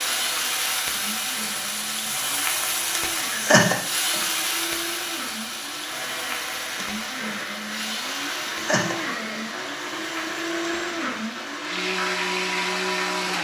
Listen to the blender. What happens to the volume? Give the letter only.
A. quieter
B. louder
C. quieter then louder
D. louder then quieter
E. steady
B.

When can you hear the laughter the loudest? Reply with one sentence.
The loudest moment of the laughter is at 4 seconds.